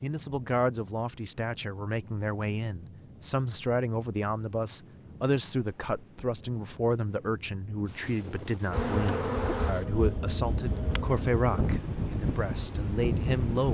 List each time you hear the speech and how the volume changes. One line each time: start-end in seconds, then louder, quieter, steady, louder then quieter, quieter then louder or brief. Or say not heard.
0.0-13.6 steady.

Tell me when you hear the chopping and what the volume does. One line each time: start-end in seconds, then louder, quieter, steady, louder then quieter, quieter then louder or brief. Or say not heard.
not heard.